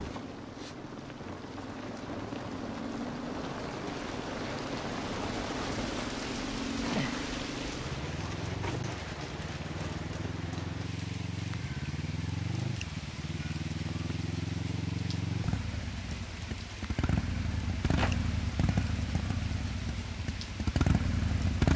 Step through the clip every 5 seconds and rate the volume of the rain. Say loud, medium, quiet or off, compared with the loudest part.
loud, loud, medium, medium, medium.